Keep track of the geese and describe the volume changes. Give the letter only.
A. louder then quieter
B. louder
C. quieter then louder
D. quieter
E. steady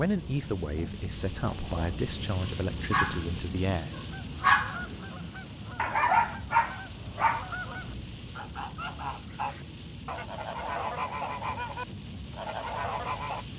B.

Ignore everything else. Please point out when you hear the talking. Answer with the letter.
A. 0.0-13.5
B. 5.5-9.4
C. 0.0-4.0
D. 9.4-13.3
C.